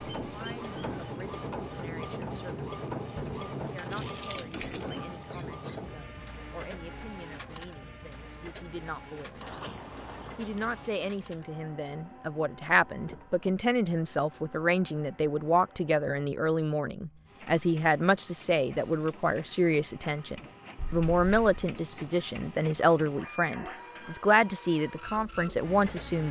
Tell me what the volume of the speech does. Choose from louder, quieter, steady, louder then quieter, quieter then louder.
louder.